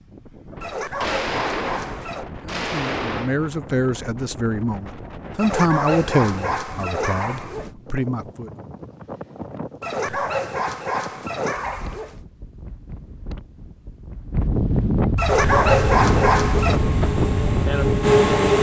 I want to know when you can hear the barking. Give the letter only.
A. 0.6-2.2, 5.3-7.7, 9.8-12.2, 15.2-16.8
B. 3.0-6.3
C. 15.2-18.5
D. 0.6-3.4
A.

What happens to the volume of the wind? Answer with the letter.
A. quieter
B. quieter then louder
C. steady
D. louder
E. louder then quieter
D.